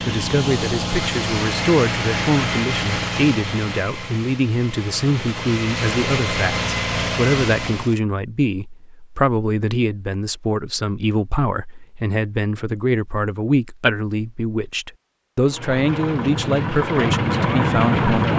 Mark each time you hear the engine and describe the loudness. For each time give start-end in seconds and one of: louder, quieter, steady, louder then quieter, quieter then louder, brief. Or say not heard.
0.0-8.0 quieter then louder
15.4-18.3 brief.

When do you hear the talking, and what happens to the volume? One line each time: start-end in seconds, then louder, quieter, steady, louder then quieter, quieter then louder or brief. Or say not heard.
0.1-18.3 steady.